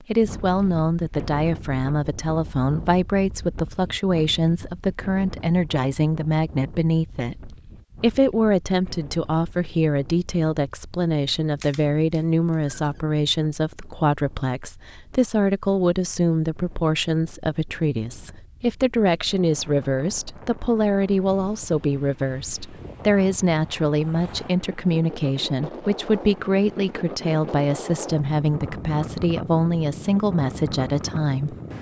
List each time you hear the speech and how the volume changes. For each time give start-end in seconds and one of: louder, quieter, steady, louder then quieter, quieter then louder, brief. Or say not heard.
0.1-31.6 steady.